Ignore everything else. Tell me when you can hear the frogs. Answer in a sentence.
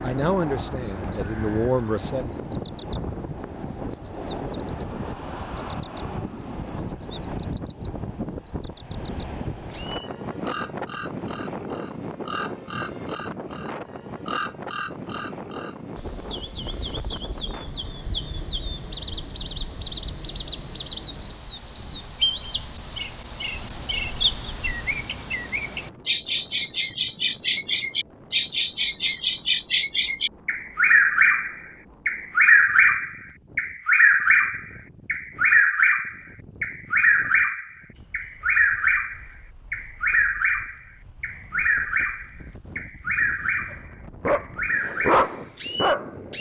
The frogs can't be heard in this clip.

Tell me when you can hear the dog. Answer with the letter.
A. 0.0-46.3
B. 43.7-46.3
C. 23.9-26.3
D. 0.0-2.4
B.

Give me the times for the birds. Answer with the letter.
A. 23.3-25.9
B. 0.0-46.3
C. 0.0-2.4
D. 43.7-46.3
B.